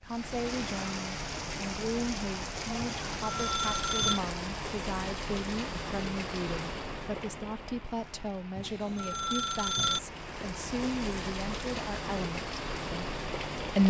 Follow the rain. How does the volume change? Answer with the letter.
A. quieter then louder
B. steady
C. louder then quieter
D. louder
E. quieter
A.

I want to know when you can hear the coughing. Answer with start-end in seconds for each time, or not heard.
not heard.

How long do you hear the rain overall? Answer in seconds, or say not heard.
14 s.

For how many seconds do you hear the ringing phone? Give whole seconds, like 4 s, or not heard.
3 s.